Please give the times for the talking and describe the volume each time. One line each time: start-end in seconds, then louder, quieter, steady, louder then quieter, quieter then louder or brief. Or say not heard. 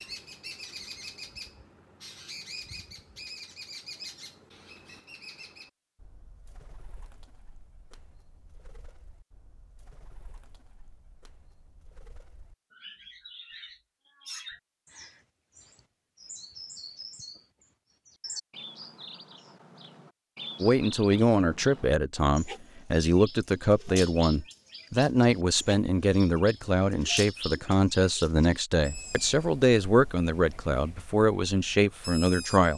20.6-32.7 steady.